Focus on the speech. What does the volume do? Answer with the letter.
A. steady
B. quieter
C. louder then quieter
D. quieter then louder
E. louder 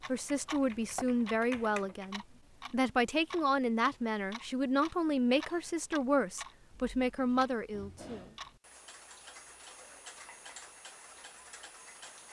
A.